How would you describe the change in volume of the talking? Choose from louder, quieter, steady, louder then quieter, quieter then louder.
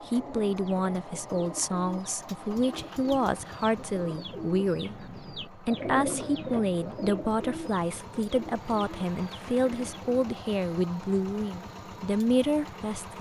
steady.